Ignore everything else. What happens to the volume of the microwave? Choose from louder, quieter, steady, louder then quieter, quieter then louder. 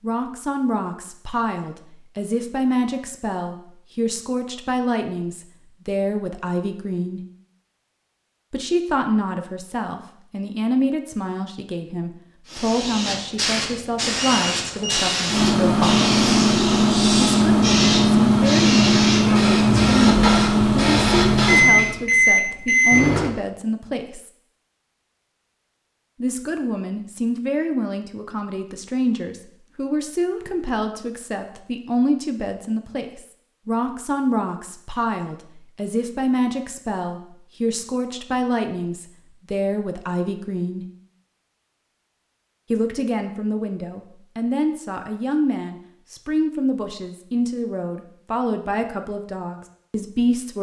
steady.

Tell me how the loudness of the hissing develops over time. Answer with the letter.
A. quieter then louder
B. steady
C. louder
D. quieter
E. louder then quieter
B.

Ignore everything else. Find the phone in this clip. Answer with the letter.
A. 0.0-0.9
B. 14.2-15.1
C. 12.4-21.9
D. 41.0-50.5
B.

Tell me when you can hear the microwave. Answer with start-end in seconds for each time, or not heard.
15.2-23.3.